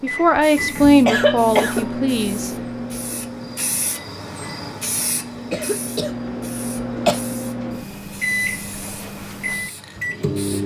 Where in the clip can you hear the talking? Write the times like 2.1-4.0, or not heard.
0.0-2.5.